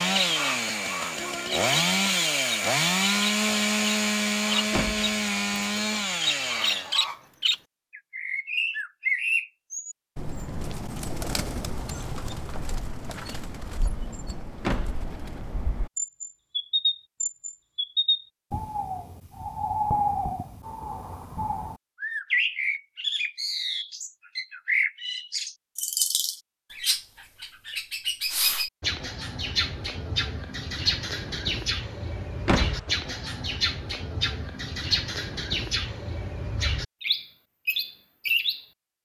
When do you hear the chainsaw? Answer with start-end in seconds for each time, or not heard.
0.0-7.0.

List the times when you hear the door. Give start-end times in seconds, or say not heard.
4.7-5.2, 14.6-15.1, 32.5-32.9.